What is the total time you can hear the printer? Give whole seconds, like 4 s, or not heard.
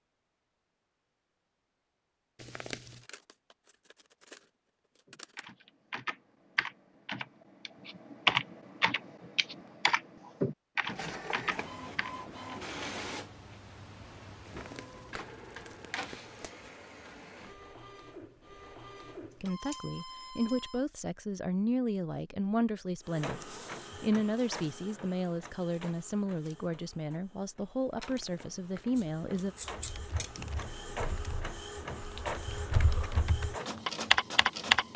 22 s.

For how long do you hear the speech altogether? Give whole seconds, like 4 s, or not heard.
10 s.